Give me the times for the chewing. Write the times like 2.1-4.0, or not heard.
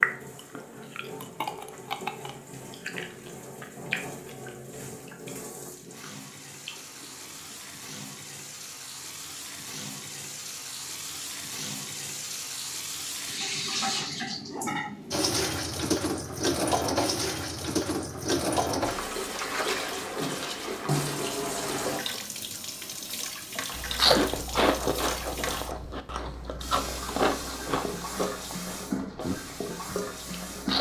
0.0-7.5, 23.8-30.7.